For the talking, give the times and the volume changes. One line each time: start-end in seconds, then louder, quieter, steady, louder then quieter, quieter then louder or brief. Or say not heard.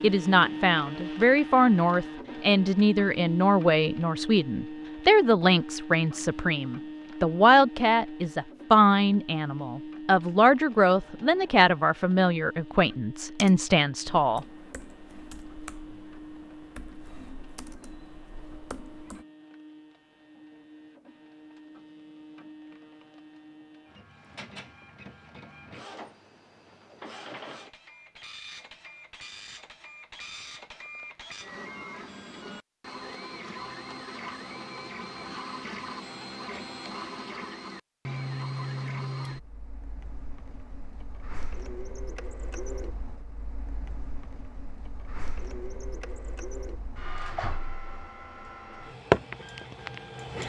0.0-14.4 steady.